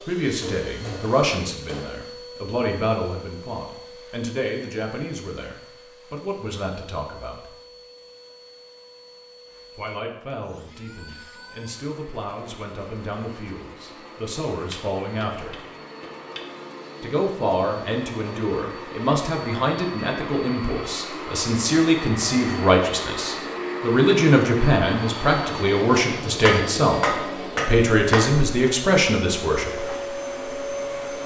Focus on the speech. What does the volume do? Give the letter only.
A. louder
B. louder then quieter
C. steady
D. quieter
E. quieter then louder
E.